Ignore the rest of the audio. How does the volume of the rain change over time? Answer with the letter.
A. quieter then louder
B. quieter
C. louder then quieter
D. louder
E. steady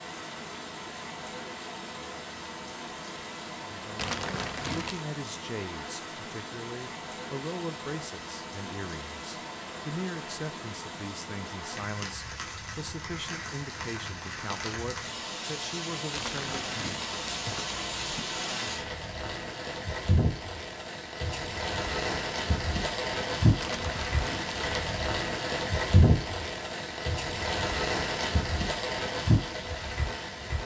D.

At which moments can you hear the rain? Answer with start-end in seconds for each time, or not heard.
0.0-30.6.